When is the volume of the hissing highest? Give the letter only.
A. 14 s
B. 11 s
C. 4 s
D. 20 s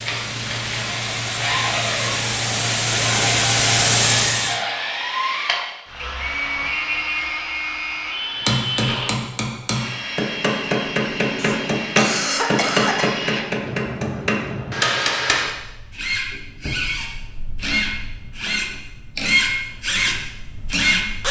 C.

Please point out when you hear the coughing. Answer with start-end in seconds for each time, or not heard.
11.3-13.1.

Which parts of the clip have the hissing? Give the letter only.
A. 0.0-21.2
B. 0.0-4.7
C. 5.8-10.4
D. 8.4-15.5
B.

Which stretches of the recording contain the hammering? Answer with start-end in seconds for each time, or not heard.
8.4-15.5.